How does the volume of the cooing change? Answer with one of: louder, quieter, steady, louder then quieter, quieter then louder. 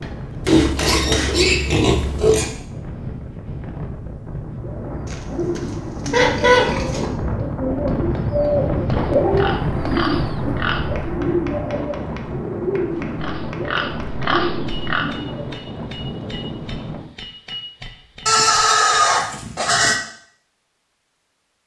louder then quieter.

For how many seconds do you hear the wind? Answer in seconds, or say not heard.
17 s.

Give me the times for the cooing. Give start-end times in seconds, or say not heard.
4.6-15.3.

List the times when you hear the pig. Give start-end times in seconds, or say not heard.
0.5-2.5, 5.0-7.1, 8.9-11.2, 13.2-15.1, 18.2-20.0.